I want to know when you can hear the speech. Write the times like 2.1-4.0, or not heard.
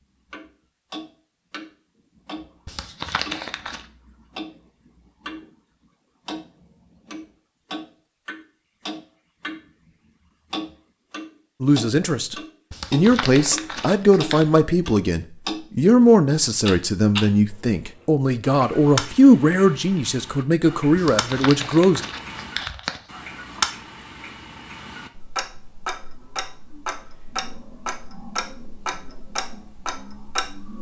11.6-22.0.